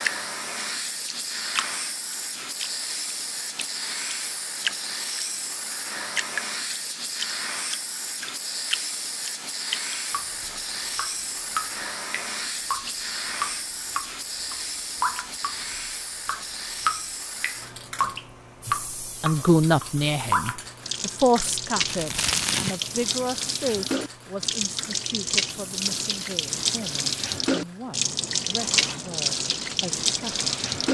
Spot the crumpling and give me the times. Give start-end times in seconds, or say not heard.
21.9-22.8.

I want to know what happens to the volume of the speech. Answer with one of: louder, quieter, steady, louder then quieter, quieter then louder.
quieter.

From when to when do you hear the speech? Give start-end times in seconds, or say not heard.
18.6-30.9.